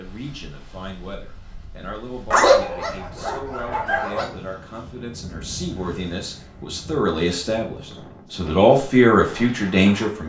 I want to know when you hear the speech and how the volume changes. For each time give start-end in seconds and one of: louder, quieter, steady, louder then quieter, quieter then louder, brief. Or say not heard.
0.0-10.2 louder.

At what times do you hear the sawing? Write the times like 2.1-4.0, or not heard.
not heard.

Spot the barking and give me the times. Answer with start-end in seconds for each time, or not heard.
2.3-4.2.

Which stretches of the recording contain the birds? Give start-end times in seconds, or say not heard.
not heard.